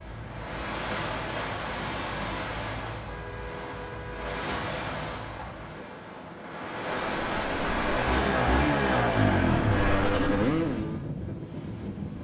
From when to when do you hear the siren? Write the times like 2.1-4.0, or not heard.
0.0-5.8.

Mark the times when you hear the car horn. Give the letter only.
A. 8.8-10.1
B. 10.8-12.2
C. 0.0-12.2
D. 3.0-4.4
D.